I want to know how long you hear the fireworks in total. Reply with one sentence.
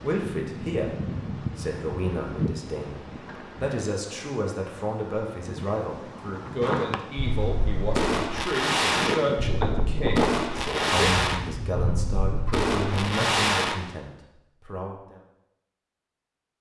The fireworks can be heard for 7 seconds in total.